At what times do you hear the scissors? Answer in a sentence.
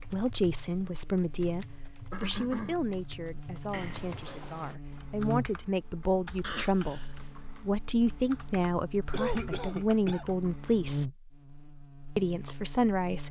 The scissors can be heard from 3.7 to 4.8 s.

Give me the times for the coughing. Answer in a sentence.
The coughing can be heard from 2.1 to 2.8 s, from 6.4 to 7.2 s and from 9.1 to 10.2 s.